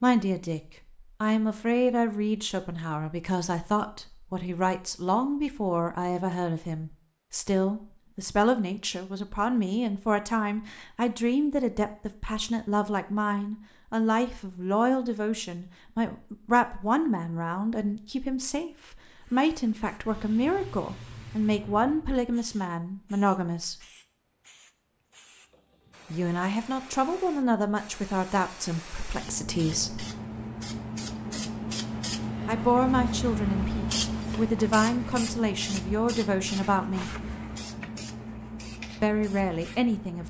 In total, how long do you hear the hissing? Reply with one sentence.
The hissing can be heard for 21 seconds in total.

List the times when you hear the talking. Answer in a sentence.
You can hear the talking from 0.0 to 0.6 s, from 1.2 to 23.8 s, from 26.1 to 30.1 s, from 32.5 to 37.1 s and from 39.0 to 40.2 s.